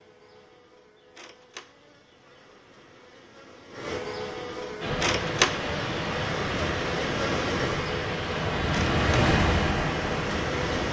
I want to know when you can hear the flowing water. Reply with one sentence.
The flowing water can be heard from 4.8 to 10.8 s.